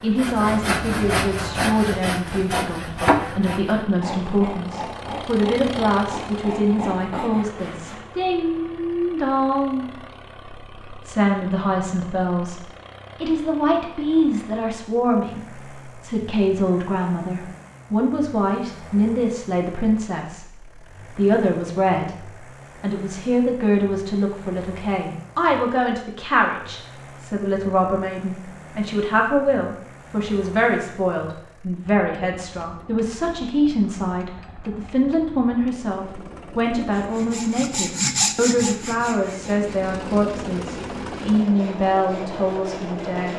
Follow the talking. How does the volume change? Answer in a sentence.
The loudness of the talking stays about the same.